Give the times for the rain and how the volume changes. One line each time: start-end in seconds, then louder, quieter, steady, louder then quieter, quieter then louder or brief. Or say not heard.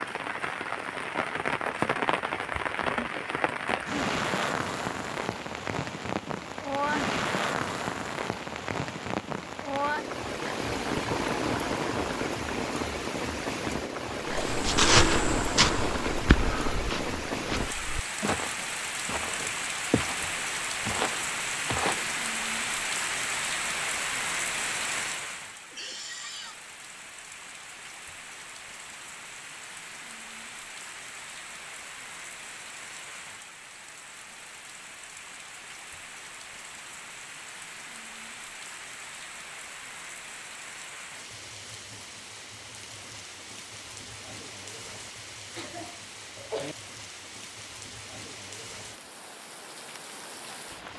0.0-50.9 quieter.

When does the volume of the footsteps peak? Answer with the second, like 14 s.
15 s.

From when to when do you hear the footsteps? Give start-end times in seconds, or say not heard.
14.4-22.1.